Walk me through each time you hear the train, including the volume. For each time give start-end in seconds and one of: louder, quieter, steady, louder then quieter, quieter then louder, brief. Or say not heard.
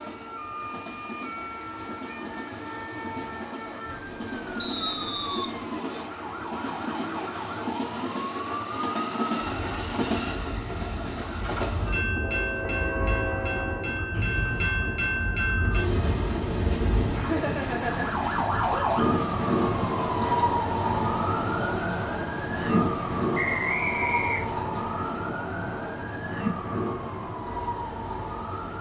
0.0-28.7 louder then quieter.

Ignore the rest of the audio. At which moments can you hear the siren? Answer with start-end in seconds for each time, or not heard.
0.0-28.7.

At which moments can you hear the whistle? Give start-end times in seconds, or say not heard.
4.5-5.5, 14.1-14.8, 23.4-24.6.